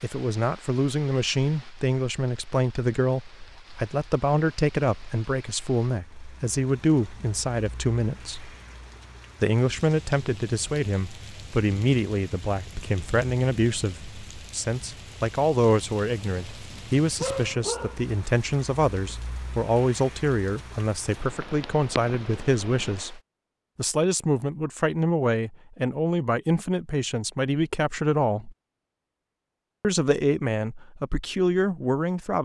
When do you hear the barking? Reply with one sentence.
The barking can be heard from 16.7 to 18.1 s.